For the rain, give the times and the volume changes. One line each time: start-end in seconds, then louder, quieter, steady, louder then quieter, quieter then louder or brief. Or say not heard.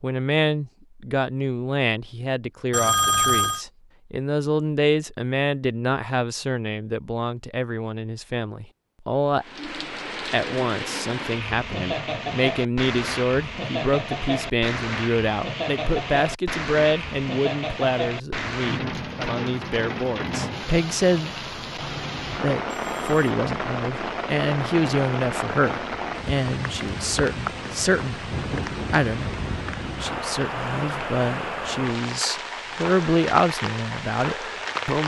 9.4-35.0 steady.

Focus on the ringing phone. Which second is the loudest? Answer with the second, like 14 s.
3 s.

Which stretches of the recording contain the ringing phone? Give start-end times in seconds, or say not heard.
2.7-3.6, 22.6-23.2.